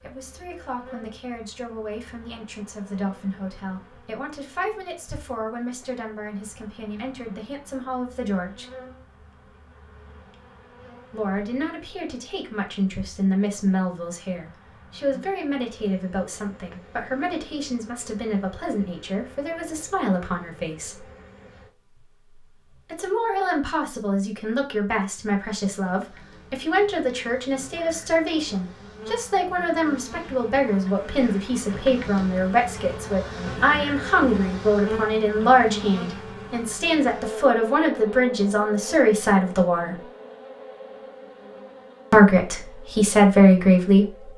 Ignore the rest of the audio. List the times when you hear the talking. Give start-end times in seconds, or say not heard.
0.0-8.7, 11.1-21.0, 22.9-40.0, 42.1-44.3.